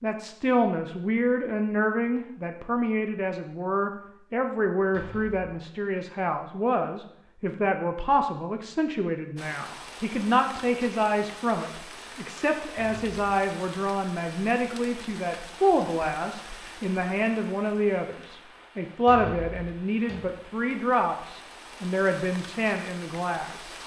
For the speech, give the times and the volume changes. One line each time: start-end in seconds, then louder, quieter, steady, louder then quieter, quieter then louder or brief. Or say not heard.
0.0-23.8 steady.